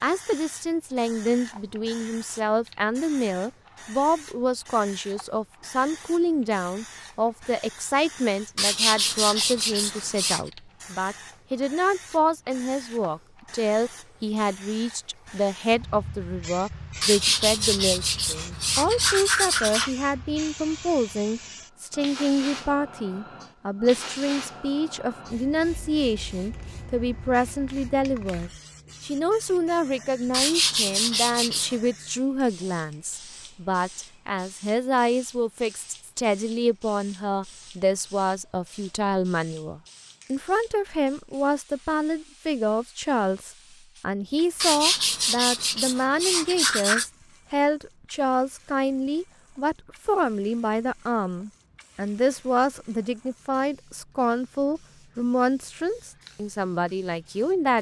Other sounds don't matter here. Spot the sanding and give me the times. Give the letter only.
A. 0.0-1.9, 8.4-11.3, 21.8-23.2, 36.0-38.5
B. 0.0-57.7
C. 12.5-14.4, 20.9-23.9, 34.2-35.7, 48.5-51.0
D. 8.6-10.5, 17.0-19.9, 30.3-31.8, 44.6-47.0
D.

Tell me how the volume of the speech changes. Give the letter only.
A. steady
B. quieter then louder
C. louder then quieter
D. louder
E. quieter
A.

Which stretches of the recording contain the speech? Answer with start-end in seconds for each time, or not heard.
0.0-57.7.